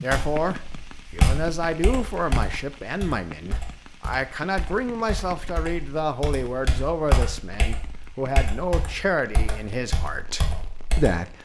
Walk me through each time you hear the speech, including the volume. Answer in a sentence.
The speech can be heard from 0.0 to 11.3 s, at a steady volume.